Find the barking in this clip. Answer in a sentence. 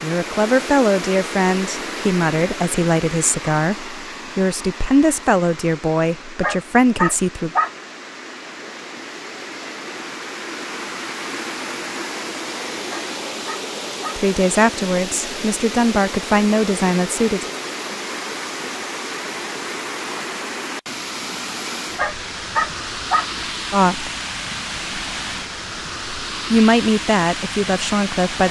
The barking can be heard from 6.4 to 7.7 s, from 12.9 to 14.2 s and from 21.9 to 23.2 s.